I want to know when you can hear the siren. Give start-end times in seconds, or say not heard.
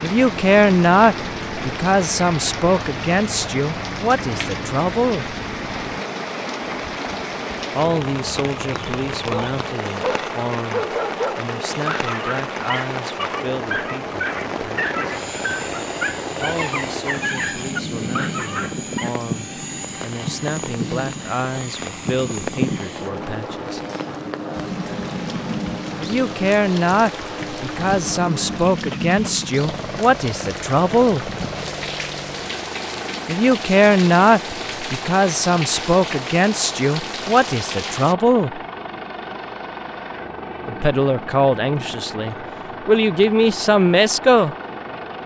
not heard.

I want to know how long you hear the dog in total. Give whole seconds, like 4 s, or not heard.
10 s.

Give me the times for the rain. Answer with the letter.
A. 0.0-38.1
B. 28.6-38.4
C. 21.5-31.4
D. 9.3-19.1
A.